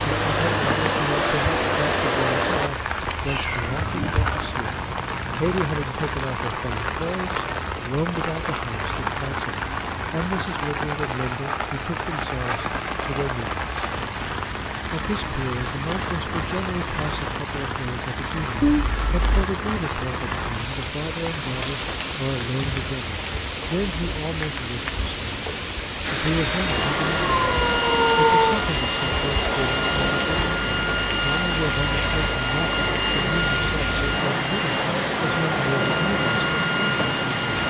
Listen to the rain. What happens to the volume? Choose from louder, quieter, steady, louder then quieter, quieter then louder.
steady.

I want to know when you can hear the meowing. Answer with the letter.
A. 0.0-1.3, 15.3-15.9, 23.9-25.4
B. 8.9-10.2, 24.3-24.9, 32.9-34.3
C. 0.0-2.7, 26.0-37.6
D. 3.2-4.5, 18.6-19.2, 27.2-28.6
D.